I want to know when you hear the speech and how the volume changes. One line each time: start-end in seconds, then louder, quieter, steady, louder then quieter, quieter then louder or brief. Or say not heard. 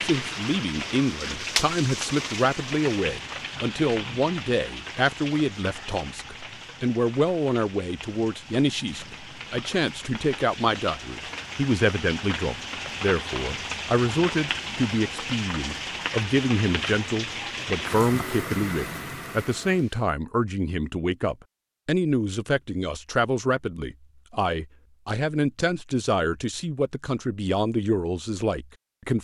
0.0-29.1 steady.